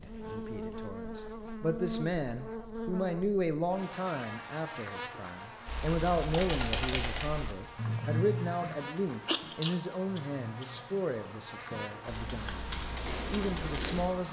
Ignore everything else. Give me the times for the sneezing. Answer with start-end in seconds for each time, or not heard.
9.2-10.7.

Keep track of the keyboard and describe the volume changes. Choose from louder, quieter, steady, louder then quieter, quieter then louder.
quieter then louder.